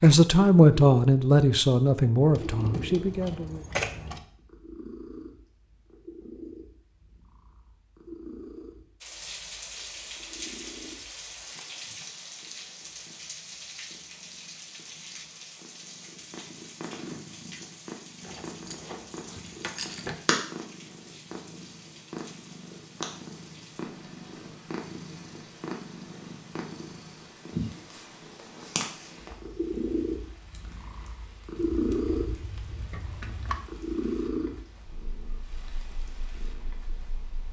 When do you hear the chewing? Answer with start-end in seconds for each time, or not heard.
not heard.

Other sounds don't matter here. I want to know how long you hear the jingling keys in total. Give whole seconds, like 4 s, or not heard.
6 s.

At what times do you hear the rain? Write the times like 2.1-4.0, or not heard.
9.0-37.4.